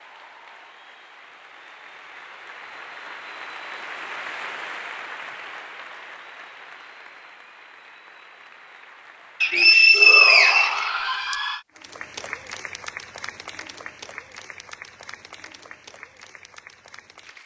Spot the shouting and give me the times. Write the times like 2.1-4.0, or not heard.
9.9-11.7.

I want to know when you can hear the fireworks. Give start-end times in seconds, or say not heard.
not heard.